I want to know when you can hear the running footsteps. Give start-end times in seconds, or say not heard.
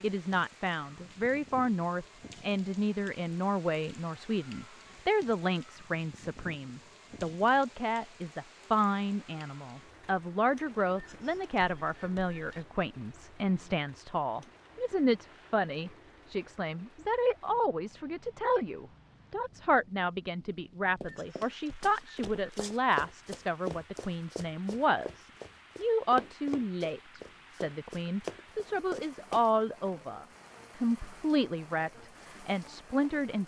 21.0-29.4.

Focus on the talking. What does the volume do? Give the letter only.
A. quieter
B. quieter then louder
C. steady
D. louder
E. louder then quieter
C.